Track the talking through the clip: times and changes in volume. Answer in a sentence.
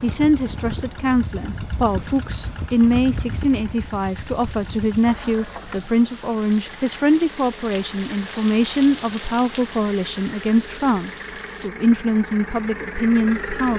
The talking can be heard from 0.0 to 13.7 s, at a steady volume.